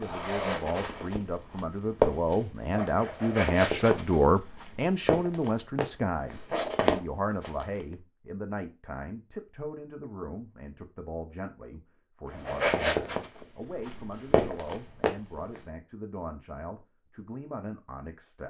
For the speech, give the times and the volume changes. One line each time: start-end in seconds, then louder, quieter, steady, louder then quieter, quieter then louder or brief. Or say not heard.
0.0-18.4 quieter.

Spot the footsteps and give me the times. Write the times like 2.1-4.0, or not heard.
0.0-8.0, 12.3-15.6.